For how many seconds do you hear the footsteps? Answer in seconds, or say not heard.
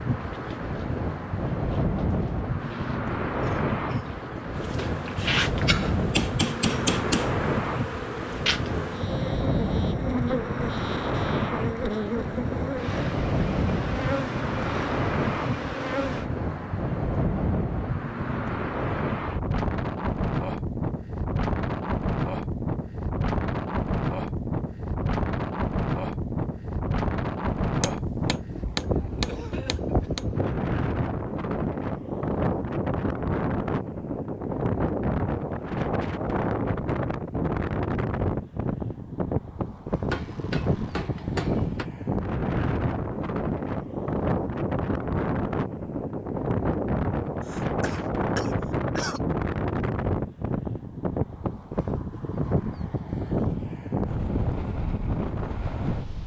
not heard.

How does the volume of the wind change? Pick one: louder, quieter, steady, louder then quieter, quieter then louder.
steady.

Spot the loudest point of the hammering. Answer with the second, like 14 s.
7 s.